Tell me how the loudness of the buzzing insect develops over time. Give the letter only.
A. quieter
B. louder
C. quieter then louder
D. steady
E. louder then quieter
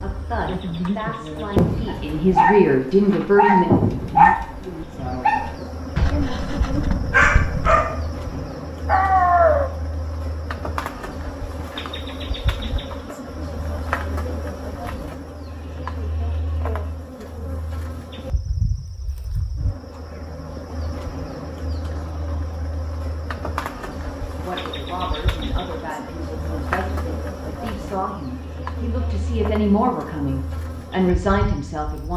A.